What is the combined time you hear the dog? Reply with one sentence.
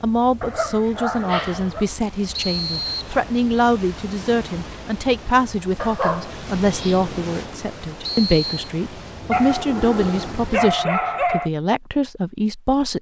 You can hear the dog for 5 seconds altogether.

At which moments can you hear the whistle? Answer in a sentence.
The whistle can be heard from 2.3 to 3.1 s and from 8.0 to 8.7 s.